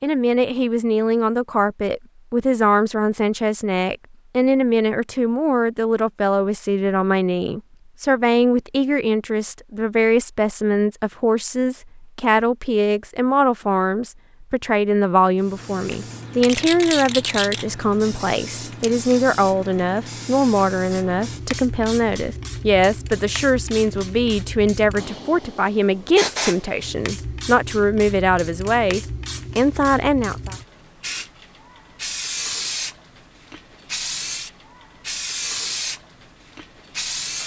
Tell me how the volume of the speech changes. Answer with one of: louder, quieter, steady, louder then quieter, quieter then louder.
steady.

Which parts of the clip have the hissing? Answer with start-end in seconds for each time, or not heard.
15.3-37.4.